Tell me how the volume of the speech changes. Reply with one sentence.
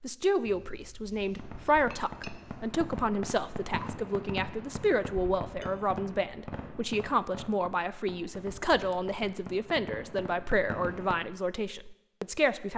The volume of the speech stays about the same.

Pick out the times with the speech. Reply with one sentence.
You can hear the speech from 0.0 to 12.7 s.